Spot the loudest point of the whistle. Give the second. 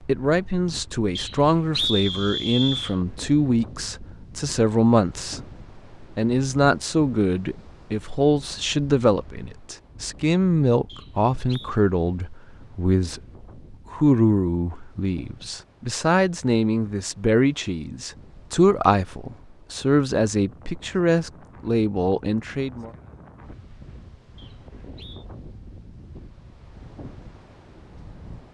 2 s.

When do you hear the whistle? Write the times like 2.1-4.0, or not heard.
1.1-3.0, 10.8-11.8, 24.4-25.2.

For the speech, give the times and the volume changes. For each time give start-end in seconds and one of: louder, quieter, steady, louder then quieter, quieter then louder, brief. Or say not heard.
0.0-22.9 steady.